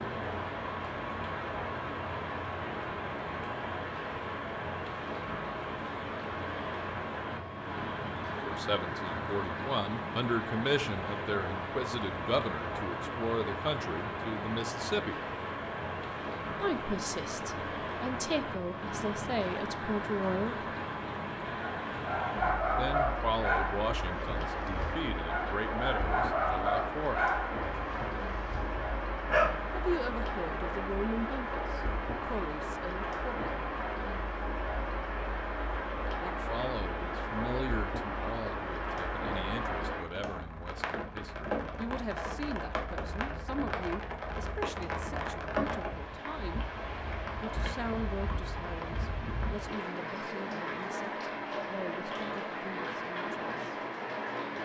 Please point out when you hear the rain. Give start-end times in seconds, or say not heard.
0.0-54.6.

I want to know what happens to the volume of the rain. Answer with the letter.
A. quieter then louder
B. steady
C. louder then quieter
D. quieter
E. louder
B.